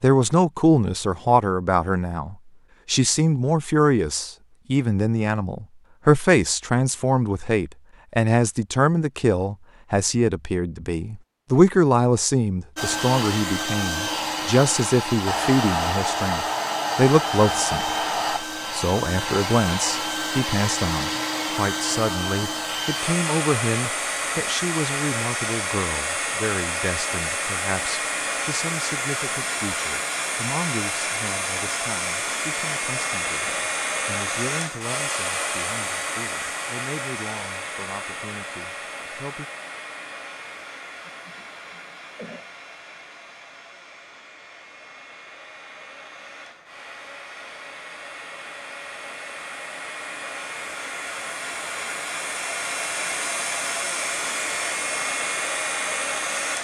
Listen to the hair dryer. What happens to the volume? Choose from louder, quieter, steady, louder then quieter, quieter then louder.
quieter then louder.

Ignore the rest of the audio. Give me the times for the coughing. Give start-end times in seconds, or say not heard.
41.1-42.5.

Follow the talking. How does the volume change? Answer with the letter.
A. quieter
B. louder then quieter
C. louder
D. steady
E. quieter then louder
A.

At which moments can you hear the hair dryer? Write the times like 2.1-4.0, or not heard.
12.8-56.5.